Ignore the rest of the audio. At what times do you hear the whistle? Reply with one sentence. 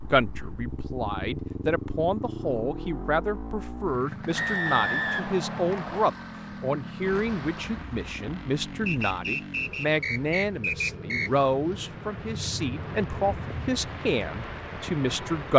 You can hear the whistle from 4.3 to 6.1 s and from 8.8 to 11.3 s.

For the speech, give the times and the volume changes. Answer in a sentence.
You can hear the speech from 0.1 to 15.5 s, at a steady volume.